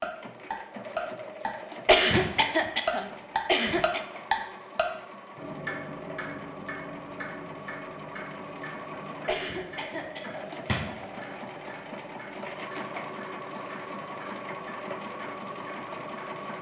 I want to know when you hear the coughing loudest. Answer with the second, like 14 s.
2 s.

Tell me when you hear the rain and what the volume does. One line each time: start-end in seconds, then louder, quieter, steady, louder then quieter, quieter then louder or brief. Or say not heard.
not heard.